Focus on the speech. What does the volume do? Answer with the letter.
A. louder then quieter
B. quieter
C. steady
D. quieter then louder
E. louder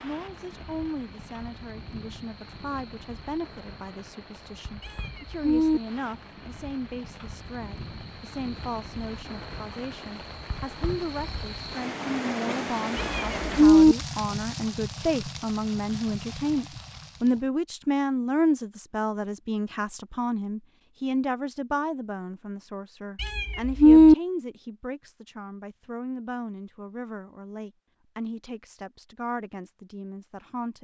A.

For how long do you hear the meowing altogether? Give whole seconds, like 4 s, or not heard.
3 s.